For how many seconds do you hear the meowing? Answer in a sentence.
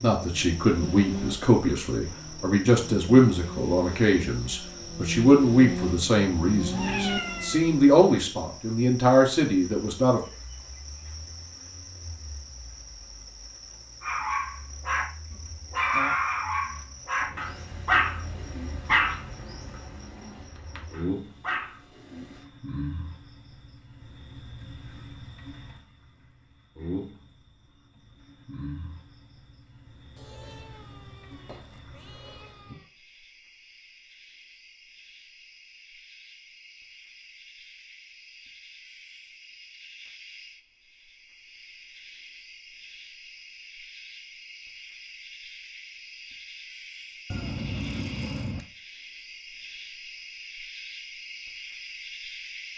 You can hear the meowing for 5 seconds altogether.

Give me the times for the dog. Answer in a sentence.
The dog can be heard from 14.0 to 22.2 s.